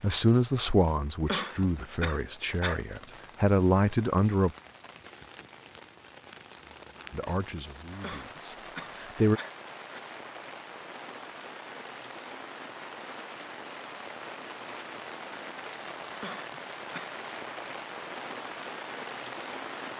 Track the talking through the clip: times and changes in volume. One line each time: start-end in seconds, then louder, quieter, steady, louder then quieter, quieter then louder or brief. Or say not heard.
0.0-4.5 quieter then louder
7.1-9.4 brief.